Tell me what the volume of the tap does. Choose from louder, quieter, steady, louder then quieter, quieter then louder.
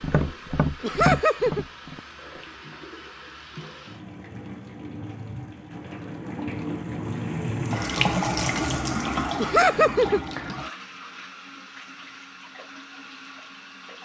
louder then quieter.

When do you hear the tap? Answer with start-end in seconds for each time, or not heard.
0.0-14.0.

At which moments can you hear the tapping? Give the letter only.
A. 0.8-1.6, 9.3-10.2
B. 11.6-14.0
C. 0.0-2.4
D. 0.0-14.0
C.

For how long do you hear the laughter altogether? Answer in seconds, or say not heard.
2 s.